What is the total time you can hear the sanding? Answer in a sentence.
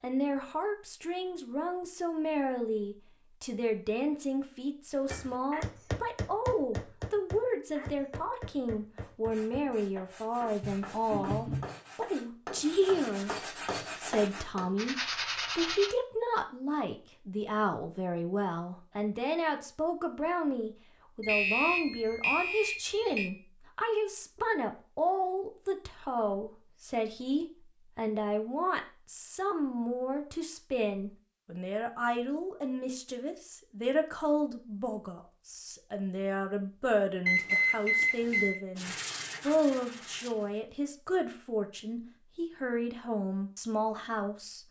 You can hear the sanding for 9 seconds altogether.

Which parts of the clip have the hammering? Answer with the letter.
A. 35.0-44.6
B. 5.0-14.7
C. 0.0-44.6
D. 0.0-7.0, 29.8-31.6
B.